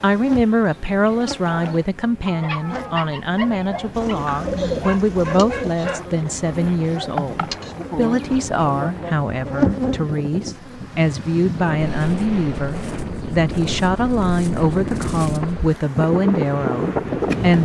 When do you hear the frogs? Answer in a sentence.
You can't hear the frogs here.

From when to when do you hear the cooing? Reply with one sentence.
You can hear the cooing from 4.0 to 5.8 s.